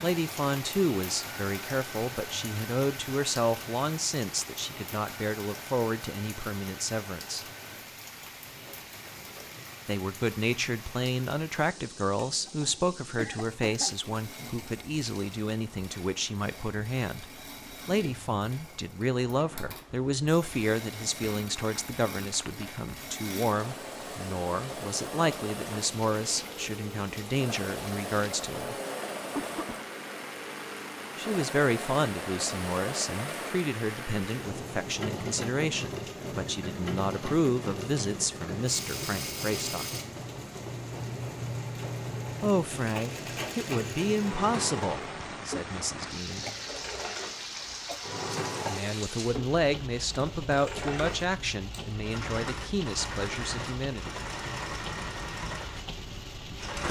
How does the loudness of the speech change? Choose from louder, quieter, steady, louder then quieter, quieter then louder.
steady.